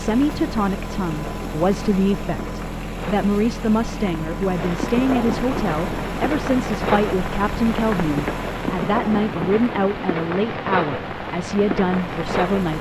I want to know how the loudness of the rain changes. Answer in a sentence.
The loudness of the rain goes up.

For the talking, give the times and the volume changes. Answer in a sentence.
The talking can be heard from 0.0 to 12.7 s, at a steady volume.